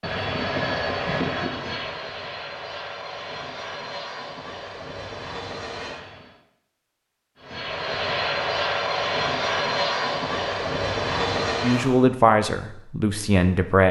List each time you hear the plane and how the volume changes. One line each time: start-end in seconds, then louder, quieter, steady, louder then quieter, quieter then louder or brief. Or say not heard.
0.0-6.4 quieter
7.4-12.1 steady.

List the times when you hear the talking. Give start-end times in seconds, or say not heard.
11.6-13.8.